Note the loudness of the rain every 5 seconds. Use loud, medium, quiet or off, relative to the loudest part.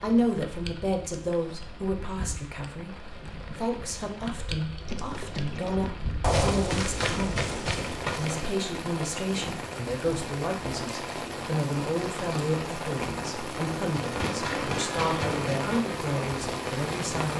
medium, medium, loud, loud.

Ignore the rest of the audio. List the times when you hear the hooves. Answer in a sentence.
You can hear the hooves from 4.8 to 8.6 s and from 13.9 to 15.8 s.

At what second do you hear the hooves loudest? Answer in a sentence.
The volume of the hooves peaks at 6 seconds.